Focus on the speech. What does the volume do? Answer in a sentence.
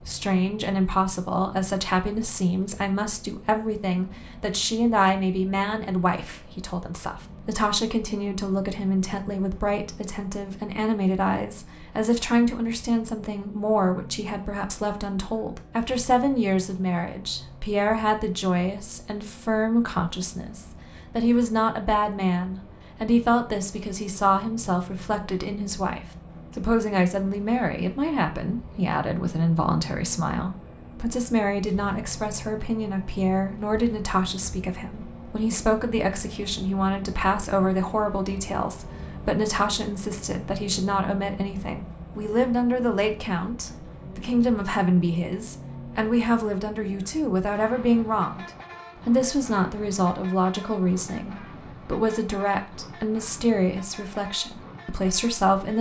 The volume of the speech stays about the same.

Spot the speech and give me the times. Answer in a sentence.
You can hear the speech from 0.1 to 55.7 s.